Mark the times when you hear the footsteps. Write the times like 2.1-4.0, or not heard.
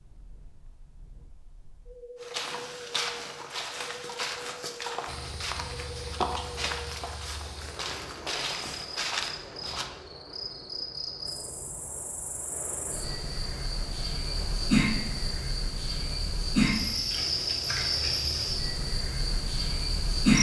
2.2-9.9.